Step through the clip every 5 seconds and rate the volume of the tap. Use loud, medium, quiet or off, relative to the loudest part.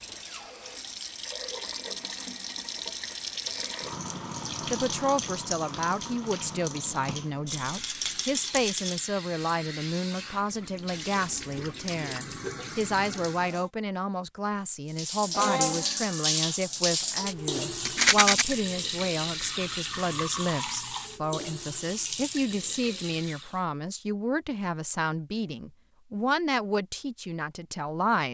medium, medium, medium, loud, medium, off.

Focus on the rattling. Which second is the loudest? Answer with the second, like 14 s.
18 s.